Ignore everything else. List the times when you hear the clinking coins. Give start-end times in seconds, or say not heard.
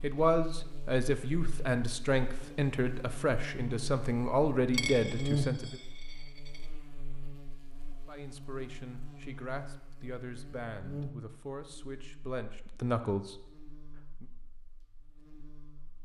4.7-6.7.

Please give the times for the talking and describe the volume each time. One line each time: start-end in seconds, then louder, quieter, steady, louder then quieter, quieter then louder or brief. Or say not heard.
0.0-5.8 steady
8.1-14.2 louder.